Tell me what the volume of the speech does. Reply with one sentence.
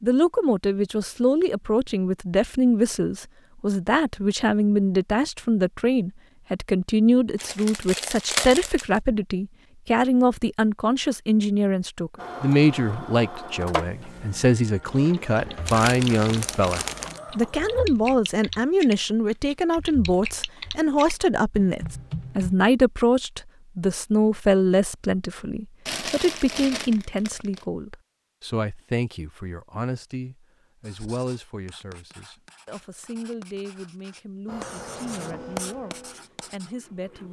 The loudness of the speech goes down.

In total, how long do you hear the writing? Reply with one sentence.
The writing can be heard for 6 seconds in total.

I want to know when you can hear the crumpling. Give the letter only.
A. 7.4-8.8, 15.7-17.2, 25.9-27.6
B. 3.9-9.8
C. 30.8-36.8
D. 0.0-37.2
A.